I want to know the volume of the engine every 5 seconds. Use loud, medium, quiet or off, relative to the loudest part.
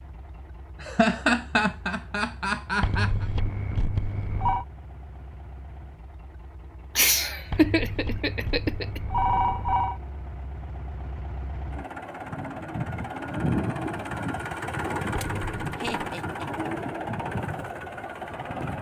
quiet, quiet, loud, loud.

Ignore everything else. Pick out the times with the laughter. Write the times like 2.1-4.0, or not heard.
0.8-3.2, 7.0-9.0, 15.8-16.4.